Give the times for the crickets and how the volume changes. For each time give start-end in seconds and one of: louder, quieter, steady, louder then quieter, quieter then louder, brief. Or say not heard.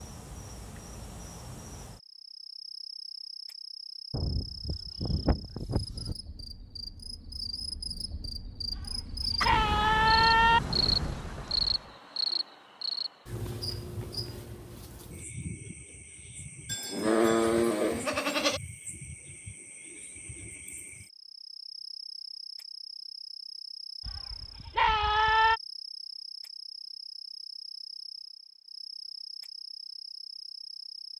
0.0-31.1 louder then quieter.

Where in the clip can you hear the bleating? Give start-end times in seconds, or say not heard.
4.1-6.2, 8.7-10.6, 16.6-18.6, 24.1-25.6.